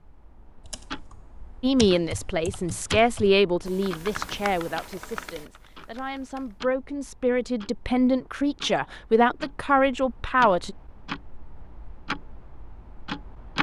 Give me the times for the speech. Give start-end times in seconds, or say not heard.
1.6-10.8.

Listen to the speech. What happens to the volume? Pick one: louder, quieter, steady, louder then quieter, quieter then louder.
quieter then louder.